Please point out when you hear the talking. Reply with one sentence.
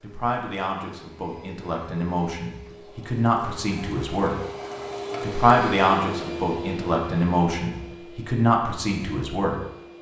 You can hear the talking from 0.0 to 4.3 s and from 5.2 to 9.6 s.